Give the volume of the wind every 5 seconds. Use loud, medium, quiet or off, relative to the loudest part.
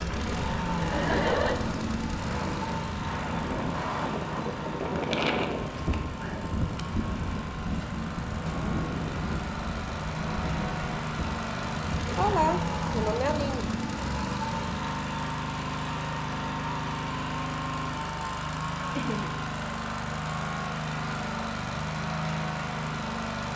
loud, loud, medium, off, off.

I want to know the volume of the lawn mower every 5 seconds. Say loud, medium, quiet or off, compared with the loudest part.
loud, medium, loud, loud, loud.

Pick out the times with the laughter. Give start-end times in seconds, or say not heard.
0.8-1.6, 12.1-13.8, 18.9-19.4.